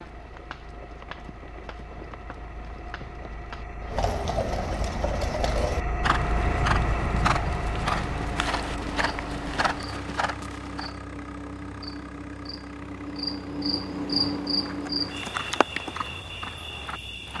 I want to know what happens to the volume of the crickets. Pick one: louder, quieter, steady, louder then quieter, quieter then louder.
louder then quieter.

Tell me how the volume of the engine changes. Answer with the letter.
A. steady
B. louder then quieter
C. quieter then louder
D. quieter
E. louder
B.